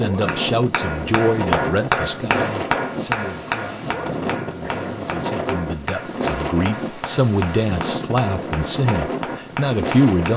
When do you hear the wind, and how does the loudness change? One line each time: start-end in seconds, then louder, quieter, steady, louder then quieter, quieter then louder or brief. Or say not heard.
0.0-10.3 steady.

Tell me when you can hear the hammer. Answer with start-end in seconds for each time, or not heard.
0.2-10.3.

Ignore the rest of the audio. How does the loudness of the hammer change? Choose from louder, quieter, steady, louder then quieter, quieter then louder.
quieter.